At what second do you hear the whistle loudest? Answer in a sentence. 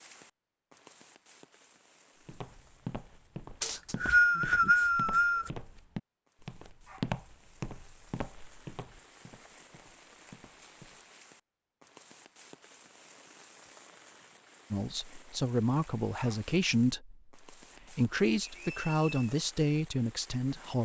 The volume of the whistle peaks at 4 seconds.